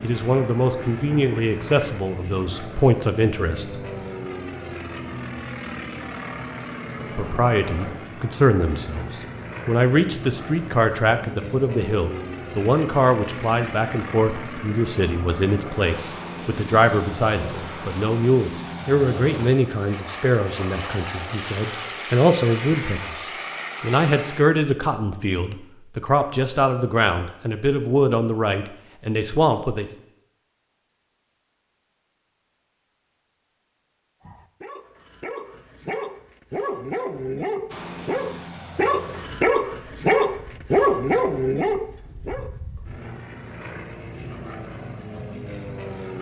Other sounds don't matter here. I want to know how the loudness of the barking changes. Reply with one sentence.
The volume of the barking goes up.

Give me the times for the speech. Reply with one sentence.
The speech can be heard from 0.0 to 3.7 s and from 7.0 to 29.9 s.